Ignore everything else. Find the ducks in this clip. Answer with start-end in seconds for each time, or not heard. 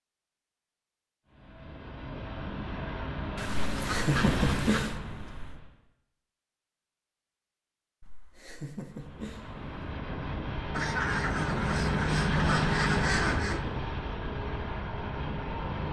3.4-5.0, 10.7-13.7.